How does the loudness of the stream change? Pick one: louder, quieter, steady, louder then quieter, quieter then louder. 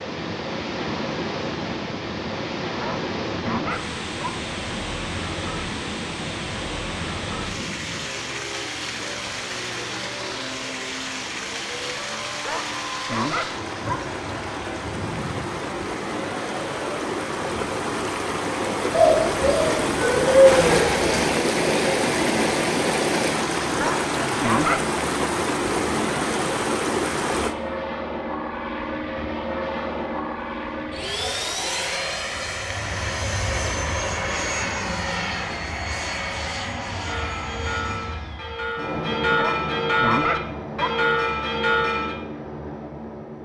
louder.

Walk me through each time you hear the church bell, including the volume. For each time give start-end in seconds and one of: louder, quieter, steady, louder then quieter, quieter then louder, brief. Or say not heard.
37.0-42.1 louder.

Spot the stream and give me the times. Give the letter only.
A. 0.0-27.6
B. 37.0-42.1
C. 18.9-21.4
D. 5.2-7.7
A.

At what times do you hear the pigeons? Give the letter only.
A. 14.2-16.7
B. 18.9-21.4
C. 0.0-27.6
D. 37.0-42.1
B.